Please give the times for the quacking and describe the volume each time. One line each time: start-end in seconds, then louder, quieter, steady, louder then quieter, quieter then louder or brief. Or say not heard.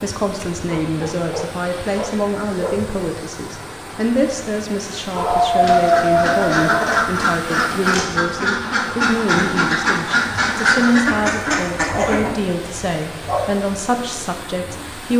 5.6-12.3 steady.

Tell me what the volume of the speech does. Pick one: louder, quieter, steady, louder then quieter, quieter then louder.
steady.